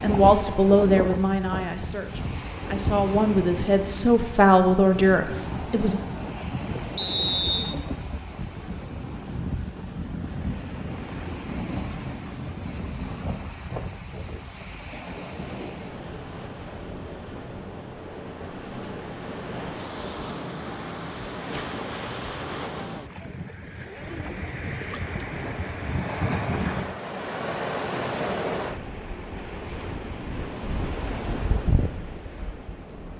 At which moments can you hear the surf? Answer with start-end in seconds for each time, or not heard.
0.0-33.1.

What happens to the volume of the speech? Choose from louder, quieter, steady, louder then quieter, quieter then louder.
quieter then louder.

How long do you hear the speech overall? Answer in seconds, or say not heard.
6 s.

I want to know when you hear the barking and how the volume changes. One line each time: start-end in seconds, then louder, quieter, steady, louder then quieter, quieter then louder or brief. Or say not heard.
not heard.